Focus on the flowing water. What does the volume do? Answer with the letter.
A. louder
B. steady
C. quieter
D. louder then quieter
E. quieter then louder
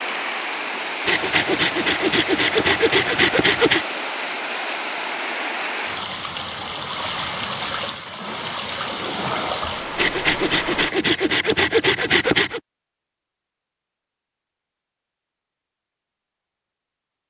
B.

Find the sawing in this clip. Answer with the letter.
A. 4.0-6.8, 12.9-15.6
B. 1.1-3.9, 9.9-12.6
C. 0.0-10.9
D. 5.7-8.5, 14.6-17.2
B.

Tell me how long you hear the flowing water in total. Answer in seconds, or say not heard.
11 s.